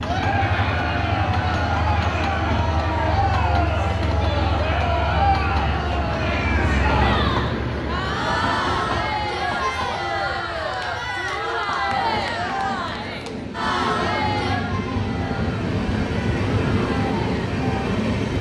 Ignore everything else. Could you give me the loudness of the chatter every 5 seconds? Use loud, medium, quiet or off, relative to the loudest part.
loud, loud, loud, medium.